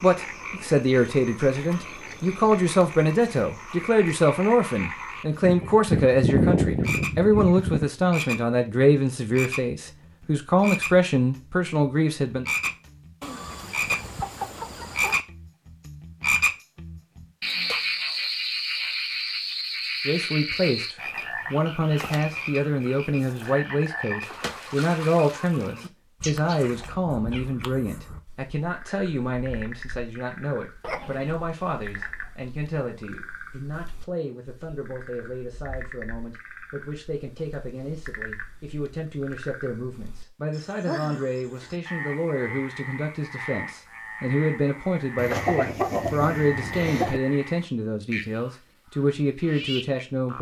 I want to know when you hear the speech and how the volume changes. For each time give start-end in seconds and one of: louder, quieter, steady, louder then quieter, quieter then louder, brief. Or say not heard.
0.0-12.4 steady
20.1-50.3 quieter then louder.